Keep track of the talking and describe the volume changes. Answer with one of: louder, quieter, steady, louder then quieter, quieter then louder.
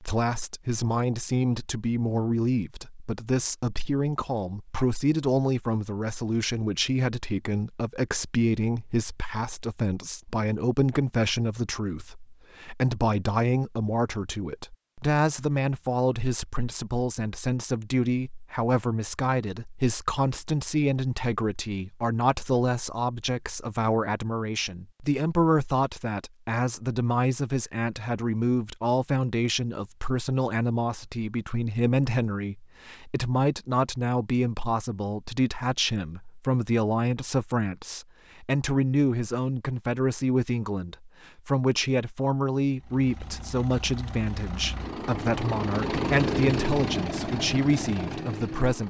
steady.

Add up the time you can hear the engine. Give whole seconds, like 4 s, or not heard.
6 s.